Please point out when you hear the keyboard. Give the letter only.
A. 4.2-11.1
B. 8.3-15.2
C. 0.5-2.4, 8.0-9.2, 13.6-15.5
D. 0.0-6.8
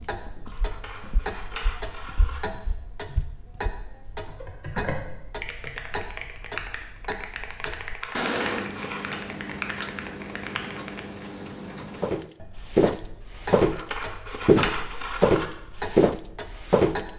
A.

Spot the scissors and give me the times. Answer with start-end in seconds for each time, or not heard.
0.5-2.4, 8.0-9.2, 13.6-15.5.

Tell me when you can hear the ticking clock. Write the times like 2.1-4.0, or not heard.
0.0-17.1.